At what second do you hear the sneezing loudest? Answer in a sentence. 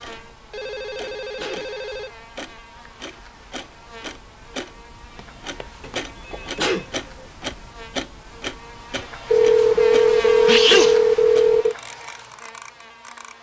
The volume of the sneezing peaks at 11 seconds.